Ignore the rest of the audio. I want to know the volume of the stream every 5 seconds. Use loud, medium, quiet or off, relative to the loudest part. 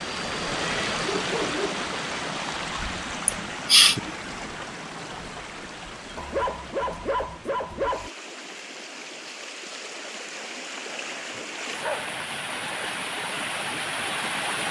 loud, medium, loud.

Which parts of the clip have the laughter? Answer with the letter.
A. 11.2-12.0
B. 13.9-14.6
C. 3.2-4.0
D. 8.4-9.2
C.